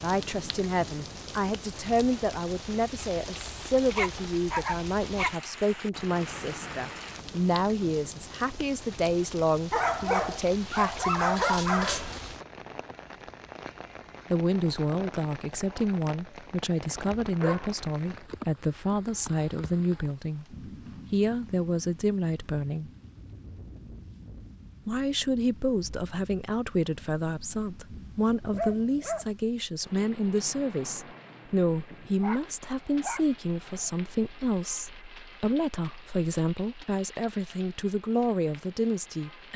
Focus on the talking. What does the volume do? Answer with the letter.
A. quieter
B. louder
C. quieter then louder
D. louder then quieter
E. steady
E.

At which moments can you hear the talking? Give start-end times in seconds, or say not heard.
0.0-12.0, 14.3-22.9, 24.9-39.5.